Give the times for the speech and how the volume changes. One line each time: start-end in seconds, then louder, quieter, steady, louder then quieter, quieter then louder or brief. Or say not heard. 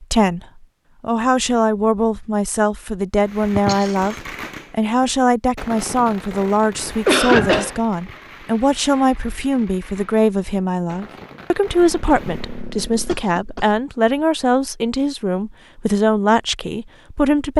0.0-17.5 steady.